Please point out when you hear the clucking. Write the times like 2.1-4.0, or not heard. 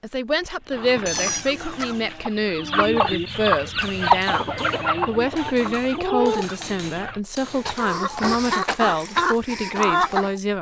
0.7-10.3.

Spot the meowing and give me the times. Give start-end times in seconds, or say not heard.
1.1-2.0.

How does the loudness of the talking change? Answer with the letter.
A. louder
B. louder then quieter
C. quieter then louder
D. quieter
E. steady
E.